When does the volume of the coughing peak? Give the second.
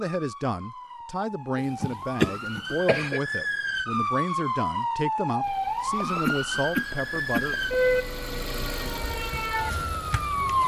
2 s.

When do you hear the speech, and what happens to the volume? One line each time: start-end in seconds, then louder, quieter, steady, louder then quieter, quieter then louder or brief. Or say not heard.
0.0-7.5 steady.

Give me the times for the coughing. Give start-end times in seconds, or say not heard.
1.6-3.2, 6.0-7.8.